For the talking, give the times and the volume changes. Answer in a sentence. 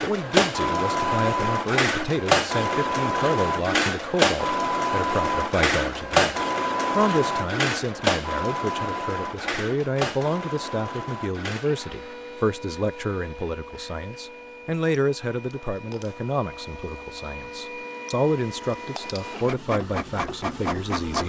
The talking can be heard from 0.0 to 21.2 s, at a steady volume.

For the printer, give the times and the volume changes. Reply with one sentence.
The printer can be heard from 0.0 to 21.2 s, getting quieter then louder.